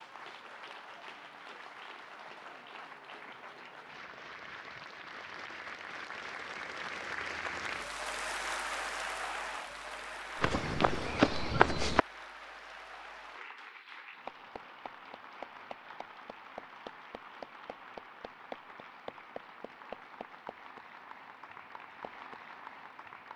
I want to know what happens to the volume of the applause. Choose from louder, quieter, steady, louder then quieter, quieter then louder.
louder then quieter.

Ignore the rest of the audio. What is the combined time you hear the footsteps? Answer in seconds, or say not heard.
2 s.